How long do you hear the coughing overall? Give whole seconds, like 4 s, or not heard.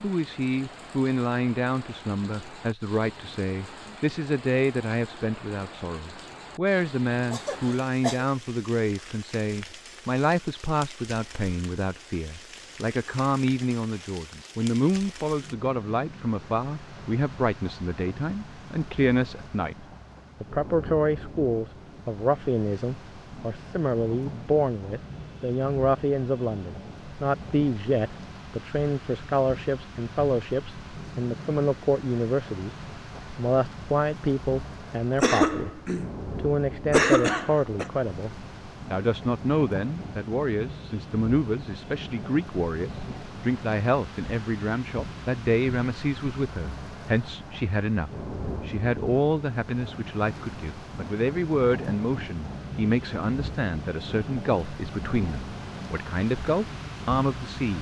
3 s.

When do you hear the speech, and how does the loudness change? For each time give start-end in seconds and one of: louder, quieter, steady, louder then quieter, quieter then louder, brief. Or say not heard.
0.0-57.7 steady.